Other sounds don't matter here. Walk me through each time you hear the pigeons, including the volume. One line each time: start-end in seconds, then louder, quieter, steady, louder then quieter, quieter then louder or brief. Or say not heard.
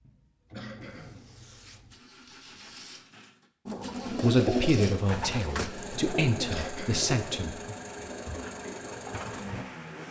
3.6-9.7 quieter.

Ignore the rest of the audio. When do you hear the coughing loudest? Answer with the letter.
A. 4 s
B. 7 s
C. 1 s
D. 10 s
B.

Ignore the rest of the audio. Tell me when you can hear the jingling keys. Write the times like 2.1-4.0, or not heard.
not heard.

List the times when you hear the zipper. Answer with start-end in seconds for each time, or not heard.
0.8-3.1.